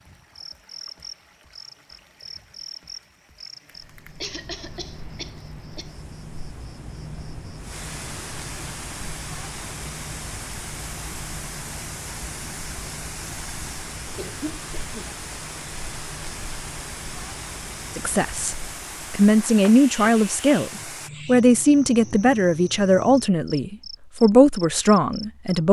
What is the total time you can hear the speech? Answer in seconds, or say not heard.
8 s.